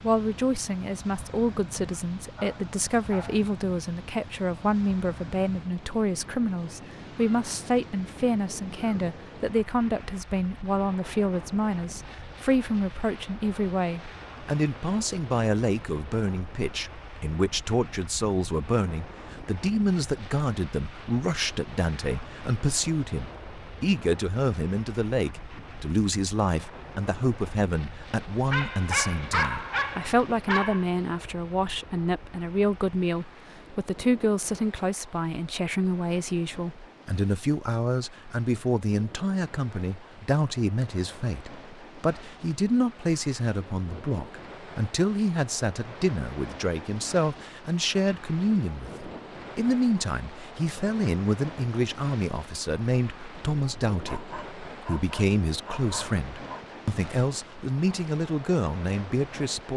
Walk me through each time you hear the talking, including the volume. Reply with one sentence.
You can hear the talking from 0.0 to 59.7 s, at a steady volume.